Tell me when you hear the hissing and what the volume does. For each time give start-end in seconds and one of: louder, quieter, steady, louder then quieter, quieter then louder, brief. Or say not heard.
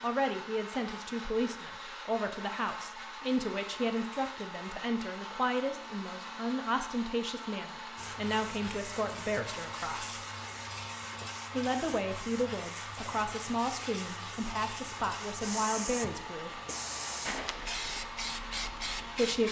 8.0-19.4 louder.